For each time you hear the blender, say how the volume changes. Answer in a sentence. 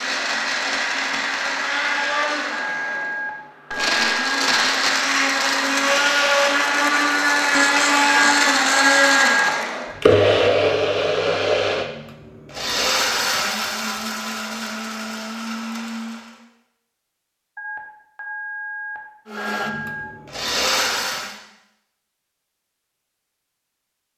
The blender can be heard from 0.0 to 16.4 s, getting louder then quieter; and briefly from 19.2 to 21.4 s.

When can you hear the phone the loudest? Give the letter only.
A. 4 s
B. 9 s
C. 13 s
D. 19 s
B.